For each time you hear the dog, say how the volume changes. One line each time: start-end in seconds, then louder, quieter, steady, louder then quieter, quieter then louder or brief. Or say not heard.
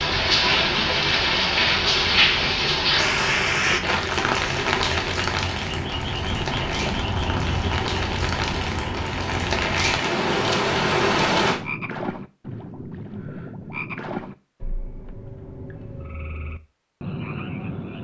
not heard.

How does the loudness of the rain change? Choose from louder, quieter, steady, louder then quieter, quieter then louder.
quieter then louder.